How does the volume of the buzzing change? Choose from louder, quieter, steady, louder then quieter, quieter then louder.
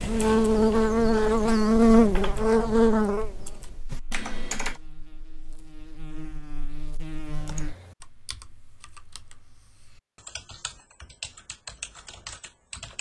quieter then louder.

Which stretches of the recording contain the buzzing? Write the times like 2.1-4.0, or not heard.
0.0-7.8.